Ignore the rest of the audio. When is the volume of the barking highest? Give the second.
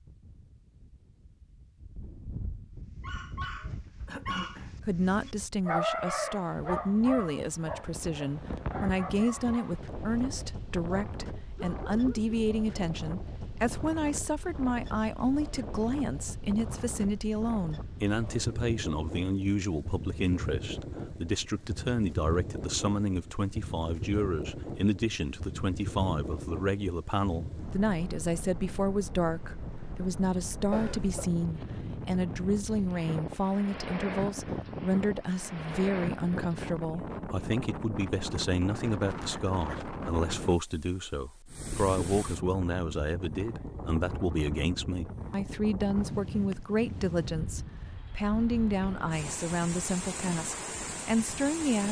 6 s.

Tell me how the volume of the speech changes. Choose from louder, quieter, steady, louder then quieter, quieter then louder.
steady.